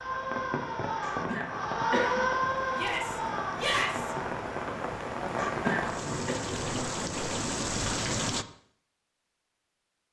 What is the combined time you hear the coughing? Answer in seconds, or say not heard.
2 s.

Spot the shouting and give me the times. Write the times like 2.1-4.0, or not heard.
2.7-4.2.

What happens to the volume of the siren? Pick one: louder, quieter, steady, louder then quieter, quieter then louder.
louder then quieter.